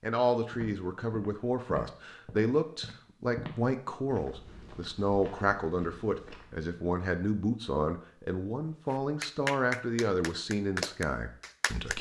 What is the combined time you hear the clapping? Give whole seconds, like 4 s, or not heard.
3 s.